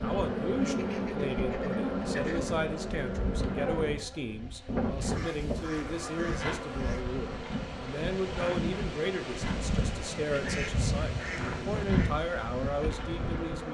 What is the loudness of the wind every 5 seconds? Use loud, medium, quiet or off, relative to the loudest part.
medium, loud, loud.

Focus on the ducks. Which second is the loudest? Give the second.
12 s.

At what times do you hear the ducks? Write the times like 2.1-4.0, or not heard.
0.7-2.4, 5.0-7.0, 10.2-12.1.